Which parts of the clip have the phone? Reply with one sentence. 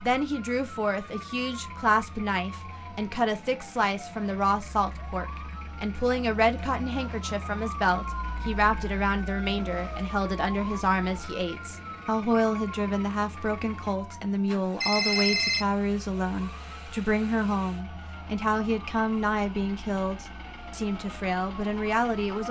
The phone can be heard from 14.8 to 15.7 s.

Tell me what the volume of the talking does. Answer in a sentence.
The loudness of the talking stays about the same.